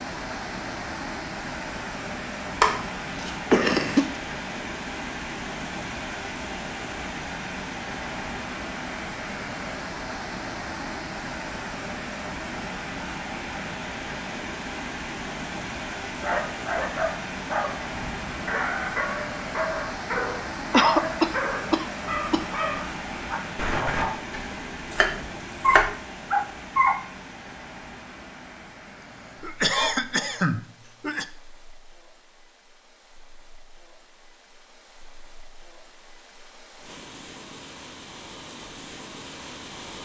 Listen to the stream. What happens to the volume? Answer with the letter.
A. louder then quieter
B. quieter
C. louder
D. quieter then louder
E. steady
B.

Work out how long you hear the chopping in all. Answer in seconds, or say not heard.
3 s.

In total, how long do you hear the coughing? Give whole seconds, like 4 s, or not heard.
4 s.